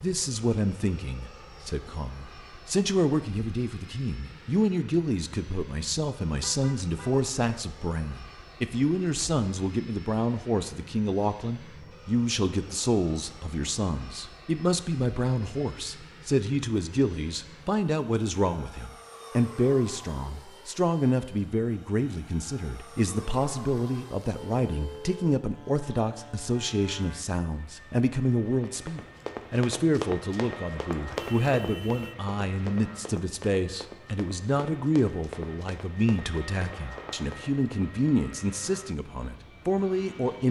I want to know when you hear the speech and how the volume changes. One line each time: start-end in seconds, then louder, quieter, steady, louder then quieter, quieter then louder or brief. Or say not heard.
0.0-40.4 steady.